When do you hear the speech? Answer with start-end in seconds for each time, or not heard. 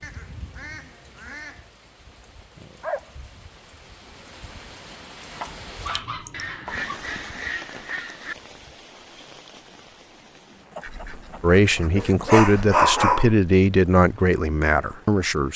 11.4-15.5.